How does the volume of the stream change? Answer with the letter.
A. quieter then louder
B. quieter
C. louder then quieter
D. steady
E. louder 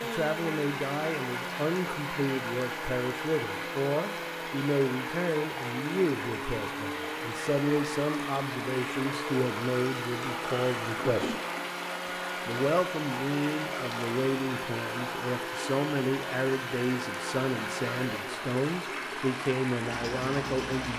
D.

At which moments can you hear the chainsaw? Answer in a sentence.
The chainsaw can be heard from 0.0 to 20.9 s.